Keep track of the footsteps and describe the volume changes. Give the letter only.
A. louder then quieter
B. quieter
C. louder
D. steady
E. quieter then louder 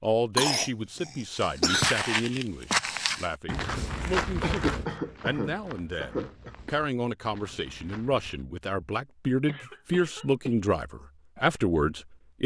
B.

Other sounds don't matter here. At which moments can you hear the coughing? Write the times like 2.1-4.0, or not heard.
0.3-2.0, 4.4-6.5, 9.4-10.8.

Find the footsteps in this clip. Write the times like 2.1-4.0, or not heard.
1.4-8.4.